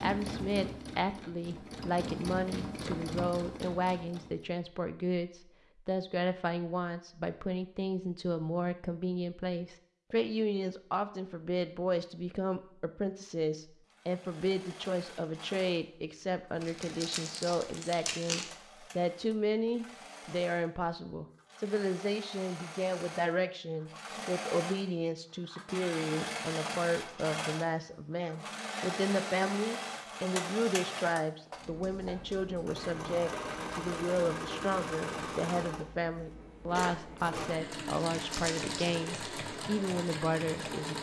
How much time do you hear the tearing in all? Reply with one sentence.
You can hear the tearing for 3 seconds altogether.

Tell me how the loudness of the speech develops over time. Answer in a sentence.
The loudness of the speech stays about the same.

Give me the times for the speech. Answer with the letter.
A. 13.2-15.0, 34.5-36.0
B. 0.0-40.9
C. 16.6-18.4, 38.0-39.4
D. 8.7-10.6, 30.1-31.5
B.